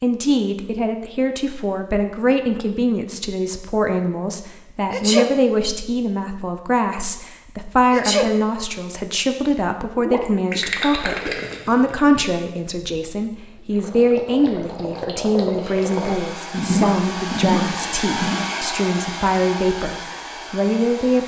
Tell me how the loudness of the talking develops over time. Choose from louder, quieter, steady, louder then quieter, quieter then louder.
steady.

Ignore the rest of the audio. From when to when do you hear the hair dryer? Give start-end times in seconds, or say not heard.
15.7-21.2.